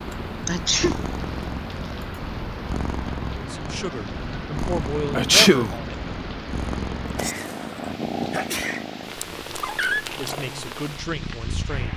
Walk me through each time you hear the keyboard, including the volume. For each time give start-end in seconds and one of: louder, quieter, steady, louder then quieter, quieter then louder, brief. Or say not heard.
not heard.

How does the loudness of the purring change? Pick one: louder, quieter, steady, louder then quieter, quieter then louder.
steady.